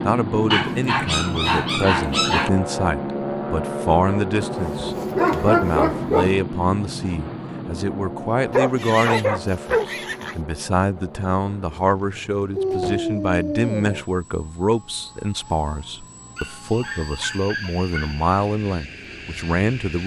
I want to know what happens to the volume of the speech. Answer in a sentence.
The volume of the speech stays about the same.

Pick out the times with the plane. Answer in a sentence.
You can hear the plane from 0.0 to 20.0 s.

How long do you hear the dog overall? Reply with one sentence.
The dog can be heard for 9 seconds in total.